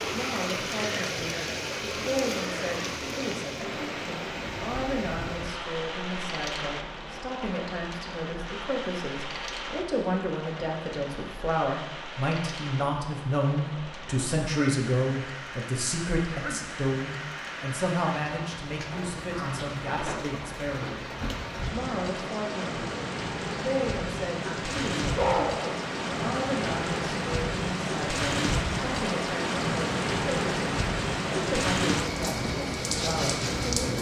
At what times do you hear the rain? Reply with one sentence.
You can hear the rain from 0.0 to 33.9 s.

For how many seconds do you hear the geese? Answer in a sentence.
You can't hear the geese here.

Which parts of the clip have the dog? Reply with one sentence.
You can hear the dog from 24.4 to 25.9 s.